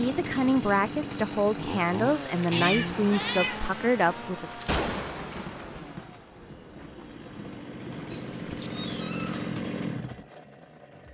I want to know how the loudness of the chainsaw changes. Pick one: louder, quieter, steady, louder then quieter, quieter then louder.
quieter then louder.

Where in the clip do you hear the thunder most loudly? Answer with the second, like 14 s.
5 s.